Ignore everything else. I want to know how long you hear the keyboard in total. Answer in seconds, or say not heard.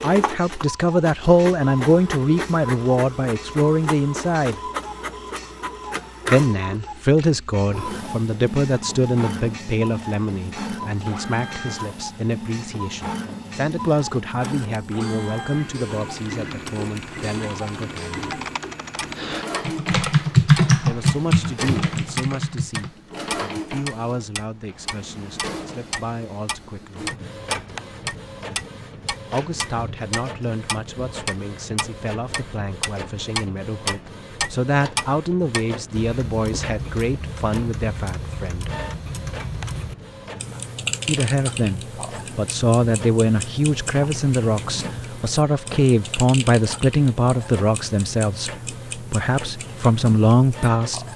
7 s.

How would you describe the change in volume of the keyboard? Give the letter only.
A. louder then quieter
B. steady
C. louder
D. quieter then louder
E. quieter
A.